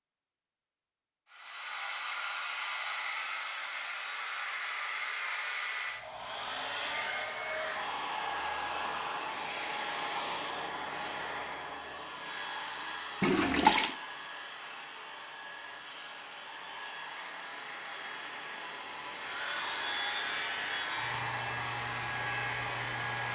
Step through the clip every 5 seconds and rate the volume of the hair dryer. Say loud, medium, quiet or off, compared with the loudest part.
loud, loud, loud, medium, loud.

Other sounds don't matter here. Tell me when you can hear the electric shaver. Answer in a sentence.
You can hear the electric shaver from 19.2 to 23.3 s.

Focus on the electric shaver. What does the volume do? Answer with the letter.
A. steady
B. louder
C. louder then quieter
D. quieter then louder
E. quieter
A.